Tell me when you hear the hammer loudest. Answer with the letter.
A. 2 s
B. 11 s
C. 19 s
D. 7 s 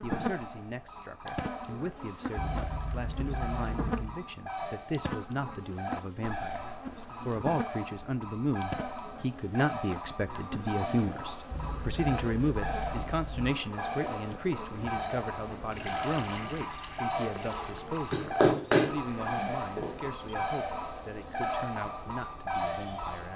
C.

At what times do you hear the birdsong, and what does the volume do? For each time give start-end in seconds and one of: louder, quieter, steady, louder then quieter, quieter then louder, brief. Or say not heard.
0.0-23.3 louder.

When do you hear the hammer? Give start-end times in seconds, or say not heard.
18.1-20.1.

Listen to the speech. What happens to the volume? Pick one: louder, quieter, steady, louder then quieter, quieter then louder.
louder then quieter.